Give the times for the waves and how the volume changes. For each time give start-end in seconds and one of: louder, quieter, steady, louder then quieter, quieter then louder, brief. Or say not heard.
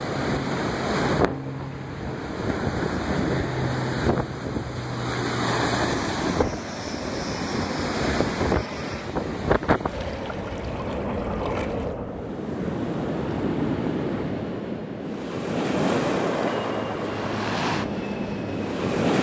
0.0-19.1 steady.